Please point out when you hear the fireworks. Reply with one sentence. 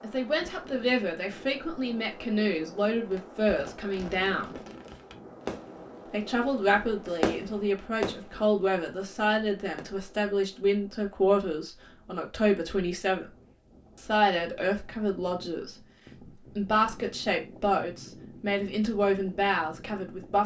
You can hear the fireworks from 3.0 to 9.8 s.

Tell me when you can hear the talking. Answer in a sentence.
You can hear the talking from 0.0 to 4.5 s, from 6.1 to 13.3 s, from 13.9 to 15.8 s and from 16.6 to 20.4 s.